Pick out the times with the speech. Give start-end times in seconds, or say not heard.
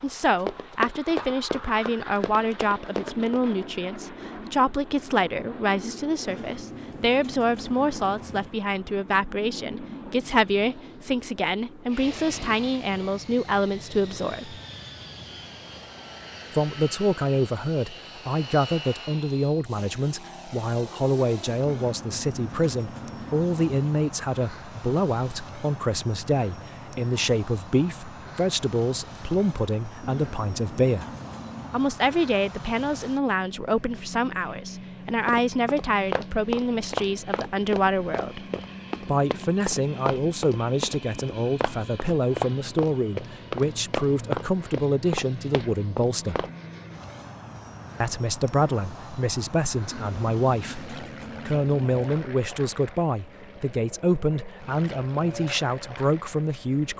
0.0-14.6, 16.5-31.1, 31.7-38.5, 39.0-46.5, 48.0-56.9.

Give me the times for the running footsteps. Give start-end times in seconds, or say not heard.
0.3-3.5, 35.2-46.5.